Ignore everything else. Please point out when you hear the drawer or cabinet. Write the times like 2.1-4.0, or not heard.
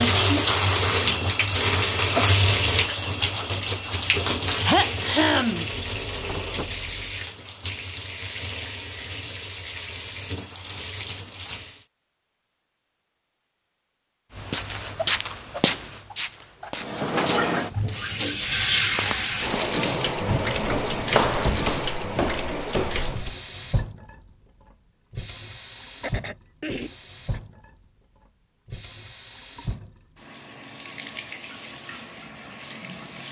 5.8-7.2, 20.2-21.7.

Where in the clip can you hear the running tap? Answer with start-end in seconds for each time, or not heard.
0.0-11.8, 16.8-33.2.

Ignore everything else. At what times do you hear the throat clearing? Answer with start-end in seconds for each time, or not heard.
4.6-5.7, 26.0-27.4.